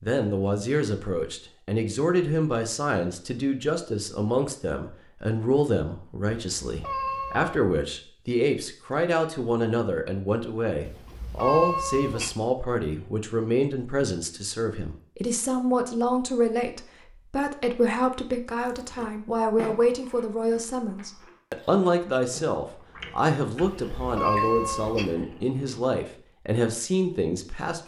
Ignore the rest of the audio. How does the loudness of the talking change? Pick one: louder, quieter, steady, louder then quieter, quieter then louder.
steady.